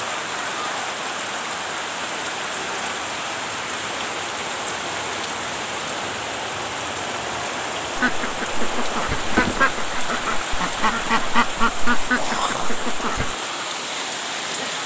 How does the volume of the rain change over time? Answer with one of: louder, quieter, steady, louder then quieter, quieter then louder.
steady.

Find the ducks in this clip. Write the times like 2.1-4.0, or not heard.
8.0-13.3.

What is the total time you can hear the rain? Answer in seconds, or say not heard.
15 s.